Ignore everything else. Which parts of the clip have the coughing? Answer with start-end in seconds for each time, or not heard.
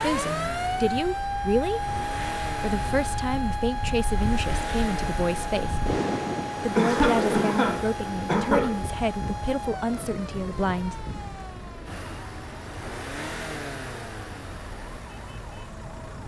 6.8-8.8.